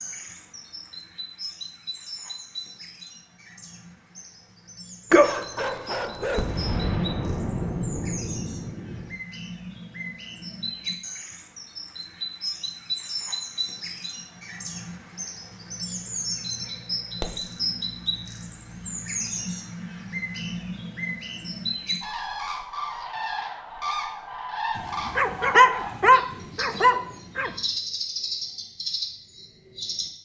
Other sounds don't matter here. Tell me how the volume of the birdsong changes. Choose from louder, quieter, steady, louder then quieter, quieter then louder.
louder.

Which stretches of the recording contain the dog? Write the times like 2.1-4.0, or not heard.
5.1-6.5, 24.8-27.5.